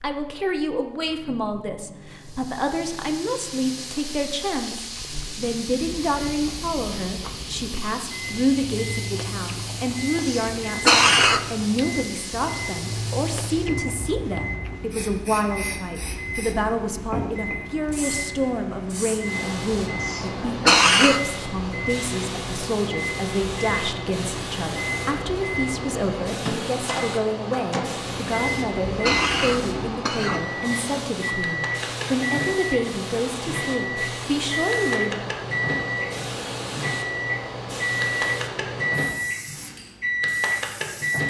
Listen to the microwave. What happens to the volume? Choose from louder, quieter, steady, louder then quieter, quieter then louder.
louder.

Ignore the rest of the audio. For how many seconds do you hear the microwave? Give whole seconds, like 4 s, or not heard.
41 s.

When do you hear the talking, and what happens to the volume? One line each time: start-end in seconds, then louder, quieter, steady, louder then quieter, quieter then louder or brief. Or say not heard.
0.0-35.3 steady.